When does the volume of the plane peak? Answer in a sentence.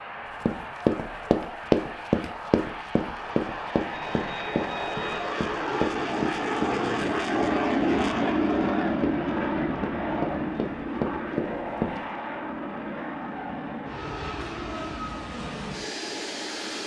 The volume of the plane peaks at 8 seconds.